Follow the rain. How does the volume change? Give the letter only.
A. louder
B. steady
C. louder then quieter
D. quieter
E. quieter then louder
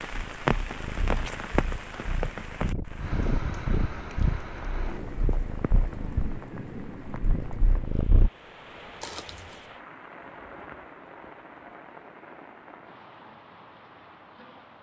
D.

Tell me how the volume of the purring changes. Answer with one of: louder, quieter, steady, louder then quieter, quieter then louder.
louder then quieter.